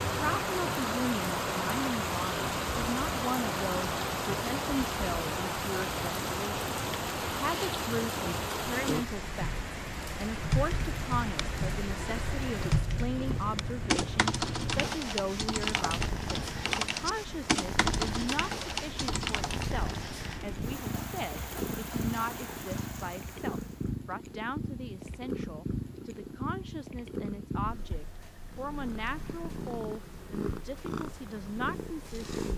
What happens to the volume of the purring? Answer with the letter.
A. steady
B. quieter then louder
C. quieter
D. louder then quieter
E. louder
A.